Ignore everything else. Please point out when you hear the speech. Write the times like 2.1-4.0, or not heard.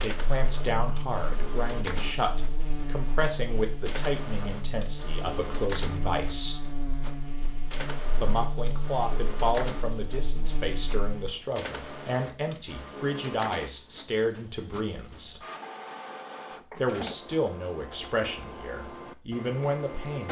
0.0-6.7, 8.2-15.4, 16.8-20.2.